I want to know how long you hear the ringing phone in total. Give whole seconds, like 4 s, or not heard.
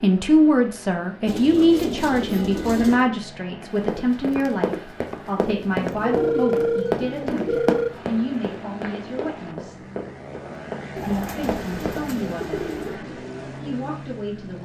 2 s.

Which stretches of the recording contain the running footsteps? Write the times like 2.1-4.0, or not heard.
3.6-12.0.